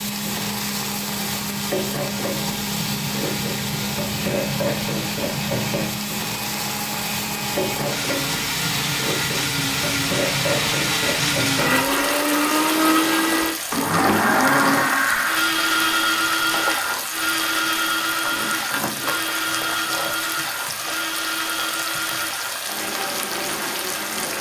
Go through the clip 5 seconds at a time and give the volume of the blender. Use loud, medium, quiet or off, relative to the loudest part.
medium, medium, loud, loud, medium.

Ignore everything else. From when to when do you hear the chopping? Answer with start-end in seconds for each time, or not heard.
not heard.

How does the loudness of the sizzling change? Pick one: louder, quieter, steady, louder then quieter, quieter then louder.
steady.